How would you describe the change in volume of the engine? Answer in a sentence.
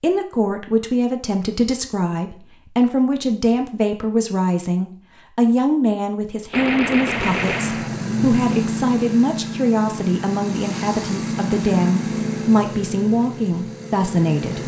The loudness of the engine goes down.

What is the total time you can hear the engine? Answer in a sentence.
You can hear the engine for 8 seconds altogether.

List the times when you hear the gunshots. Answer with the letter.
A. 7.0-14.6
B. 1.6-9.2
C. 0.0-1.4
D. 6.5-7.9
D.